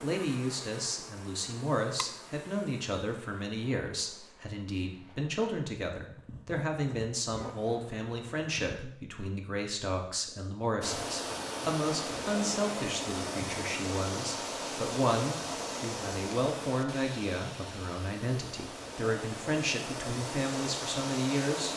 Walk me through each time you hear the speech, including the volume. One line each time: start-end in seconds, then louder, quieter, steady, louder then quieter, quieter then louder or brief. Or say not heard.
0.0-21.7 steady.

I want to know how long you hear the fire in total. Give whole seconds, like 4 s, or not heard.
not heard.